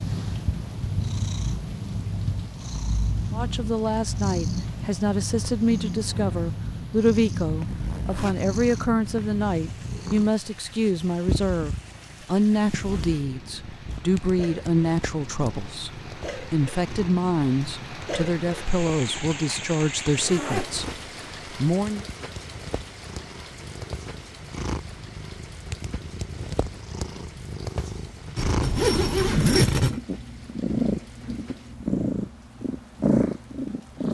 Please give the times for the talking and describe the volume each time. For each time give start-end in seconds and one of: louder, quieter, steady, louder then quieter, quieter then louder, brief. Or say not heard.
3.3-22.1 steady.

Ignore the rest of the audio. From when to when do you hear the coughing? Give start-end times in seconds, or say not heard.
not heard.